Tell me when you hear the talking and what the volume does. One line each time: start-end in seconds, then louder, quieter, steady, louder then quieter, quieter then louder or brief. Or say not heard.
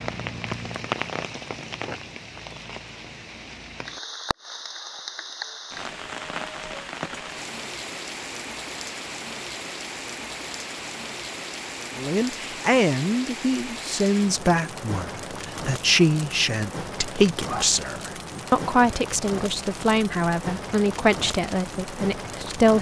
11.9-22.7 steady.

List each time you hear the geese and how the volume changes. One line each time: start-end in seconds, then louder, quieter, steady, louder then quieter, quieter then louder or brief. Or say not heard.
not heard.